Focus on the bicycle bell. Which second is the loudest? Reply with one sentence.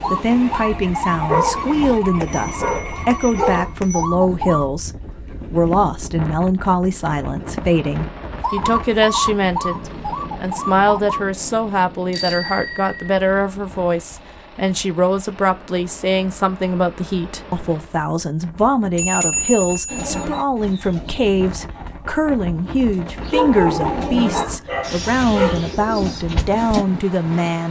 The loudest moment of the bicycle bell is at 19 seconds.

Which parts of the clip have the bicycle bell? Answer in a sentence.
The bicycle bell can be heard from 2.2 to 4.0 s, from 12.1 to 13.1 s and from 18.9 to 20.2 s.